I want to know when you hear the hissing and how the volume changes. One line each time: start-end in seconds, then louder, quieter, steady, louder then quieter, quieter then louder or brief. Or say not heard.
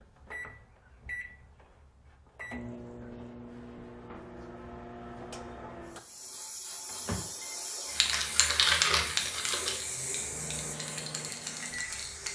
5.8-12.3 louder then quieter.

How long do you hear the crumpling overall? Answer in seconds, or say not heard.
2 s.